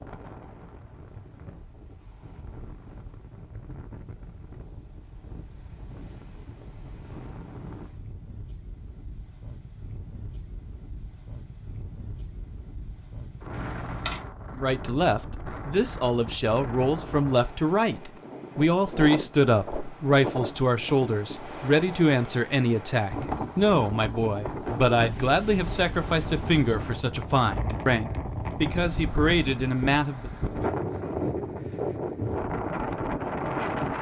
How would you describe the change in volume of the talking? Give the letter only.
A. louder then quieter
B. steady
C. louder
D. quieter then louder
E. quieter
B.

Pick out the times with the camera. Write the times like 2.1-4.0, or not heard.
13.5-14.2.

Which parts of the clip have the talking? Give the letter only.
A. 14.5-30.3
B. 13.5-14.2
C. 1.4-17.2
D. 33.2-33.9
A.